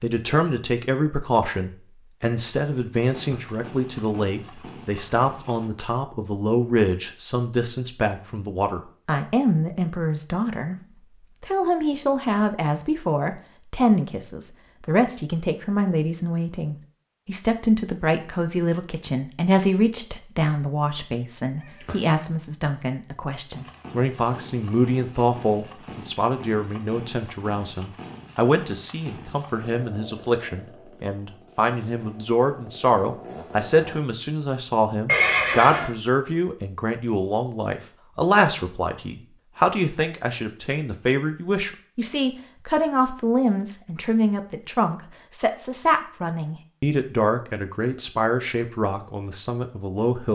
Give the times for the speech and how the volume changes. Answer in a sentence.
You can hear the speech from 0.0 to 10.8 s, at a steady volume; and from 11.4 to 50.3 s, at a steady volume.